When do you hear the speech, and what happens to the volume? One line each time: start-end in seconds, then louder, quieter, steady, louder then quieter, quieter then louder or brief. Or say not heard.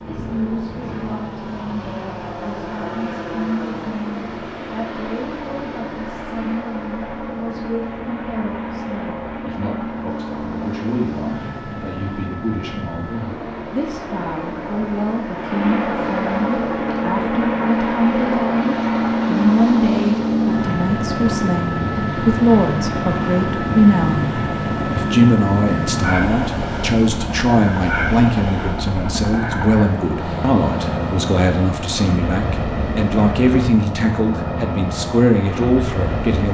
0.0-36.5 louder.